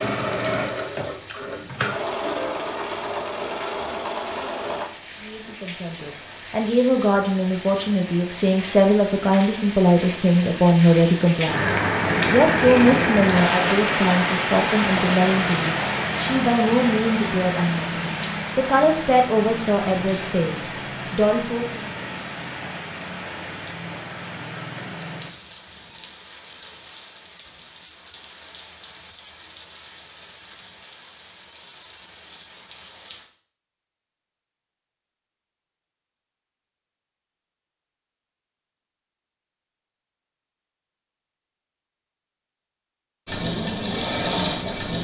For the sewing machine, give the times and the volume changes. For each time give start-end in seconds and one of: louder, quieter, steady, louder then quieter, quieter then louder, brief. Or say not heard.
0.0-4.9 steady
43.2-44.9 brief.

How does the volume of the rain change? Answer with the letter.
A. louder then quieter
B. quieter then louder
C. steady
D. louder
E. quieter
A.